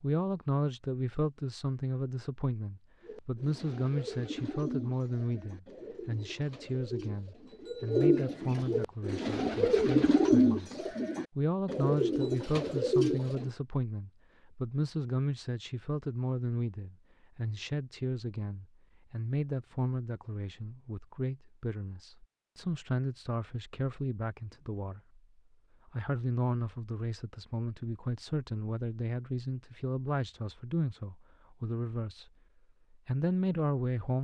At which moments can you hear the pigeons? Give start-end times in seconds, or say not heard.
3.0-13.5.